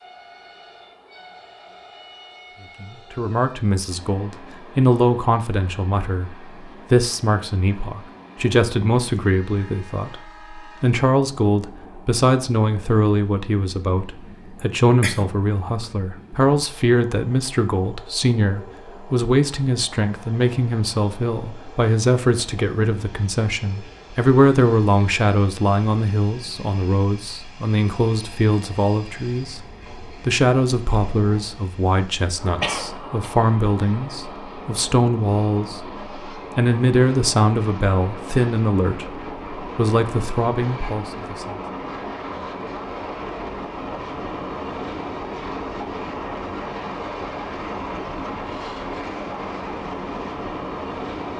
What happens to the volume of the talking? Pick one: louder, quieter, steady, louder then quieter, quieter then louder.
steady.